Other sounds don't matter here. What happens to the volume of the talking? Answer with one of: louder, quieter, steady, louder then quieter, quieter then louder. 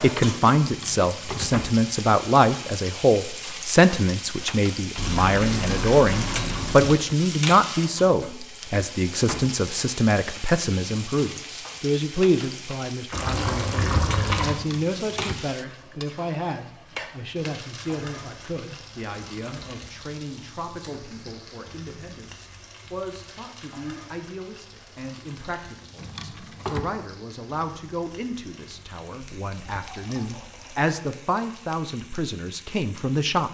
quieter then louder.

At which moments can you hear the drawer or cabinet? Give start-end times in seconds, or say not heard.
0.6-1.6, 14.5-15.4, 25.9-26.9.